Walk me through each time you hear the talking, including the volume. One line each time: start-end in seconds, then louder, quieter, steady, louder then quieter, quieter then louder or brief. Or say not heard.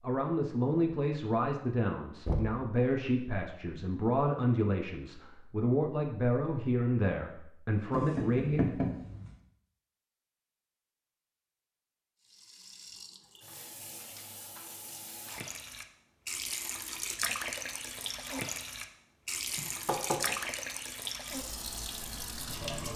0.0-8.8 steady.